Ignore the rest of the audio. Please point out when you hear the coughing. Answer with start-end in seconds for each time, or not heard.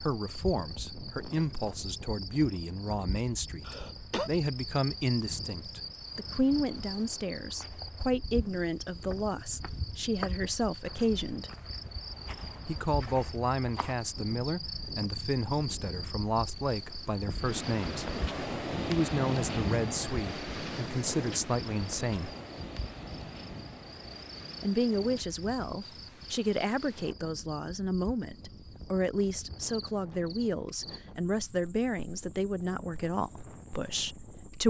3.6-4.3.